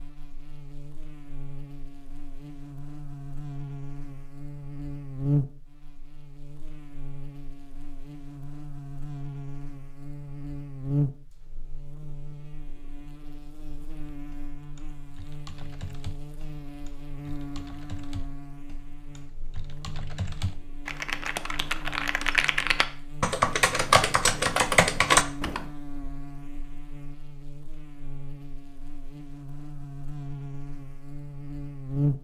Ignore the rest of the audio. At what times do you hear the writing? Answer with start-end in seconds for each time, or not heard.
not heard.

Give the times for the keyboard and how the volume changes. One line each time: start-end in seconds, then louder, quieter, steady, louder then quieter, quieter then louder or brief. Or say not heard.
14.2-25.6 louder.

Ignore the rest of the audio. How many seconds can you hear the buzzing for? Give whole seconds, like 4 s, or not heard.
32 s.